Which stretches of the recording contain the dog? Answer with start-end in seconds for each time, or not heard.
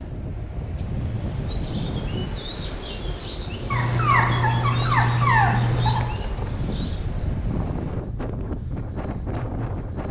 3.7-6.1.